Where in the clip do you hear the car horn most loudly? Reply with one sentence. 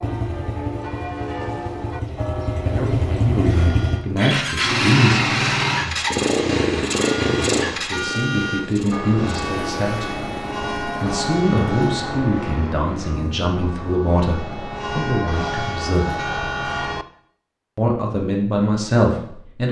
The loudest moment of the car horn is at 8 seconds.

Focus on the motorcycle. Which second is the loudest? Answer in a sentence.
The loudest moment of the motorcycle is at 5 seconds.